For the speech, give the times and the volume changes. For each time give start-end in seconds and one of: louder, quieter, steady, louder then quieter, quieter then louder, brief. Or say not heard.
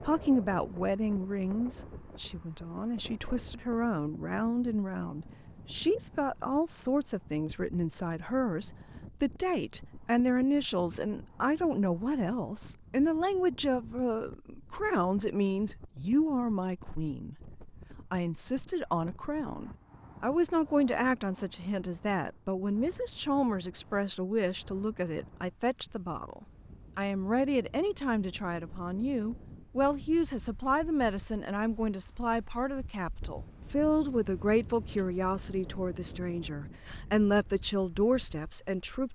0.0-39.1 steady.